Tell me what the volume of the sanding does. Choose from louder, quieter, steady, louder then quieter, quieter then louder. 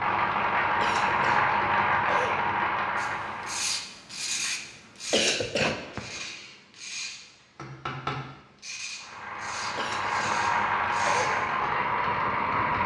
quieter.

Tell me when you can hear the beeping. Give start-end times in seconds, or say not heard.
not heard.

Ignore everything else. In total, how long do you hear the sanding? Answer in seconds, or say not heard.
9 s.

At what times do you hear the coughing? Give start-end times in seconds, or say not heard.
0.8-2.4, 5.1-6.2, 9.8-11.3.